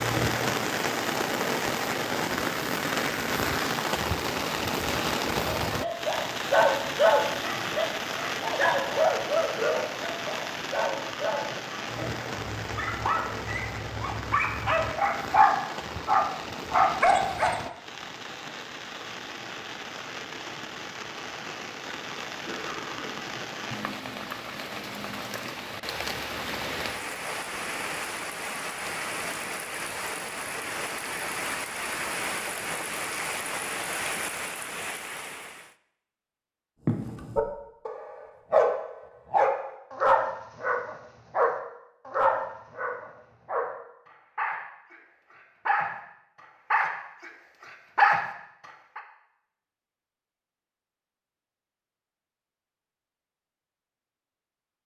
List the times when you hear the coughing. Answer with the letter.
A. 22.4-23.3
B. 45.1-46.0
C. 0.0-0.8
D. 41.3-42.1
A.